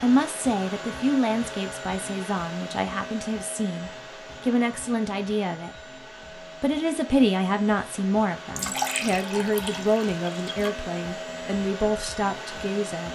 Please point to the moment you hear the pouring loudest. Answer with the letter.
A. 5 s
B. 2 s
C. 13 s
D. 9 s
D.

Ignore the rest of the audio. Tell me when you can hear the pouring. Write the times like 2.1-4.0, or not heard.
8.6-10.8.